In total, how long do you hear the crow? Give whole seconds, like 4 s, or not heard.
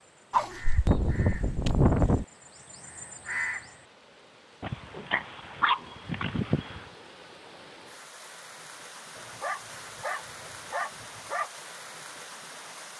4 s.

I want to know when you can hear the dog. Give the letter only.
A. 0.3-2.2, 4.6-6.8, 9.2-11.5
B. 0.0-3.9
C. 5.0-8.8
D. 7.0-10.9
A.